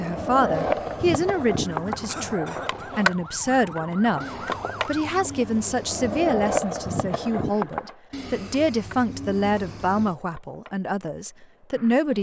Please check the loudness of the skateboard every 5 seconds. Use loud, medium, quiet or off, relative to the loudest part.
loud, loud, quiet.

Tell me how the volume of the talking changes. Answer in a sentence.
The loudness of the talking stays about the same.